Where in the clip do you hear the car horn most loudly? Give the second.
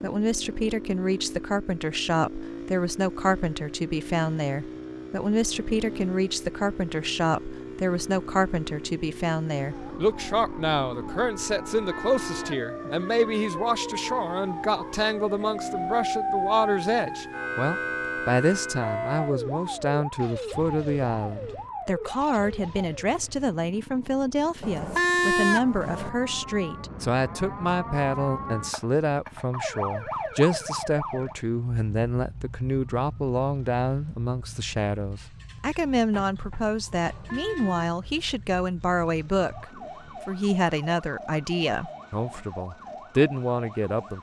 25 s.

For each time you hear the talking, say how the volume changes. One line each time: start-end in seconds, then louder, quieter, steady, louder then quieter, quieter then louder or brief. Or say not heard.
0.0-44.1 steady.